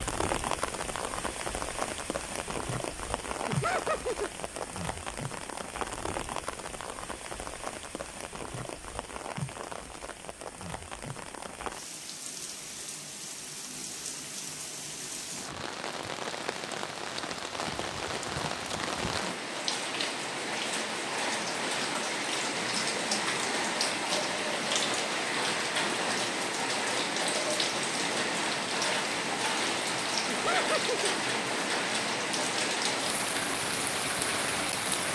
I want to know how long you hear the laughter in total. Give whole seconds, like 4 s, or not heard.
2 s.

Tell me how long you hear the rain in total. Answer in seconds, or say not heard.
35 s.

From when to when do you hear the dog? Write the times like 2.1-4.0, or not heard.
not heard.